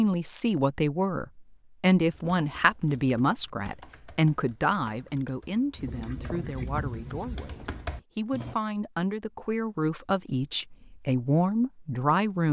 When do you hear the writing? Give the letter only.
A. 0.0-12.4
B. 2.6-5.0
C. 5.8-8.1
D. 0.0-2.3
C.